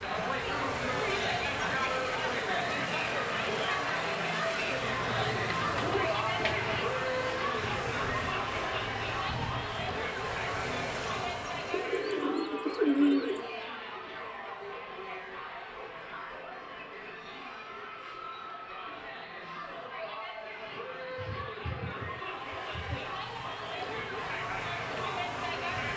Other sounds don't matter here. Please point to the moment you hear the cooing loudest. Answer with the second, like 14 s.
13 s.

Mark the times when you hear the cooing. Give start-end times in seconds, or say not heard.
5.2-6.8, 11.7-13.5, 21.1-23.1.